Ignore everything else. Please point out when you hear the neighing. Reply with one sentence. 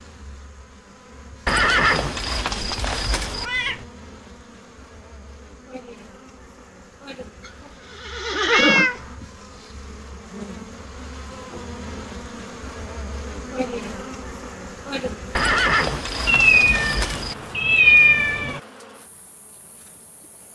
You can hear the neighing from 1.4 to 3.5 s, from 7.5 to 9.2 s and from 15.3 to 17.4 s.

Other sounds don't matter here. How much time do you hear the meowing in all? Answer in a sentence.
The meowing can be heard for 4 seconds in total.